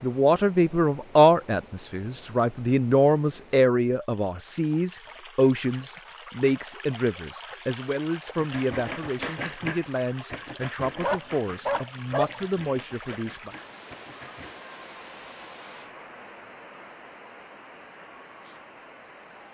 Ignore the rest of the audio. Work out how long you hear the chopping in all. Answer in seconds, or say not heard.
6 s.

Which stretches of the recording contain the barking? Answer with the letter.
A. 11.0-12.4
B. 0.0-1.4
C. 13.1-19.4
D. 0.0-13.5
A.